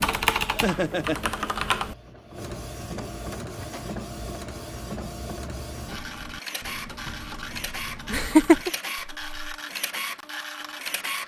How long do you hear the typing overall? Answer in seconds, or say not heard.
6 s.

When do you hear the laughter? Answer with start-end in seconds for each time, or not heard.
0.5-1.5, 8.1-8.7.